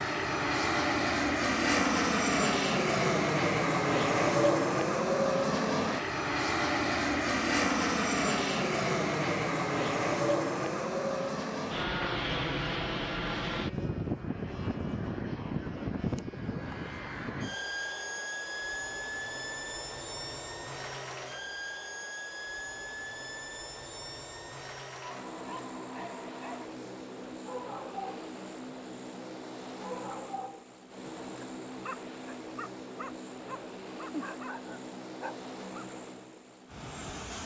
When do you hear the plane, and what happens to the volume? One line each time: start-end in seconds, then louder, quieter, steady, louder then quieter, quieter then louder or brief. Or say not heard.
0.0-37.4 quieter.